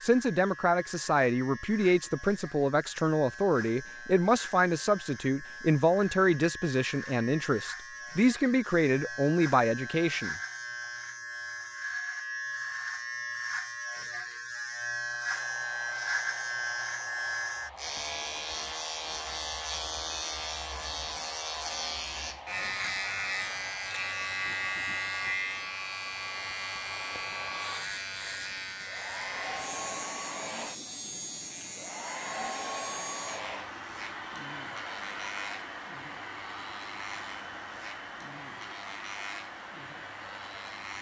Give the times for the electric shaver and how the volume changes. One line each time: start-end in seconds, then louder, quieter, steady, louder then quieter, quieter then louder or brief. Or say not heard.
0.0-40.9 louder then quieter.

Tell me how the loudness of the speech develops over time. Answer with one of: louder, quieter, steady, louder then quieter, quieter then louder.
steady.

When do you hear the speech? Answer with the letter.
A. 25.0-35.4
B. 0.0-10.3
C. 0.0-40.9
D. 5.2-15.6
B.